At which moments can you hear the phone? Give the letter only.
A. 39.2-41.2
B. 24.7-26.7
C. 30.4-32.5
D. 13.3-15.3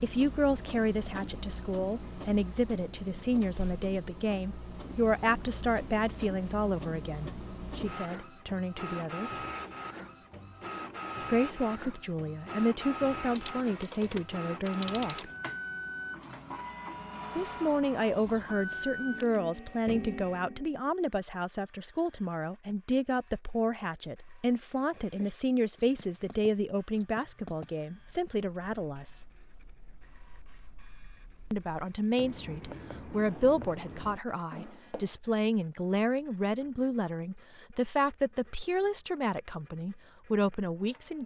D.